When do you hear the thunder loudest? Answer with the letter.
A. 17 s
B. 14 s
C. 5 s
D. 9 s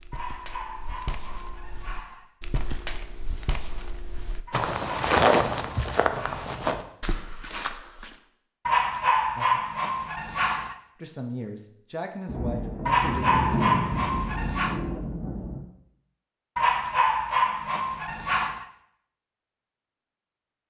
B.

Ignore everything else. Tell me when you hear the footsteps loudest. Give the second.
5 s.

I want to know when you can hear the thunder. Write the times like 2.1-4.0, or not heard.
12.2-15.7.